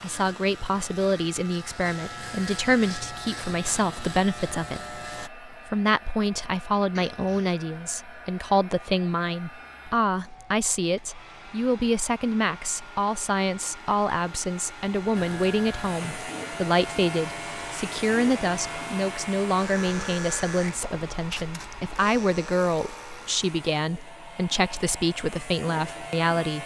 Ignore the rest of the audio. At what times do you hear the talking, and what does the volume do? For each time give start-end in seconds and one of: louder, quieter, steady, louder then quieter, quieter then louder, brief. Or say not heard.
0.0-26.6 steady.